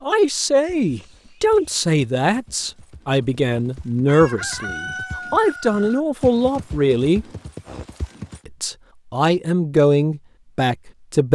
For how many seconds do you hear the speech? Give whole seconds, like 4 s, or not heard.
10 s.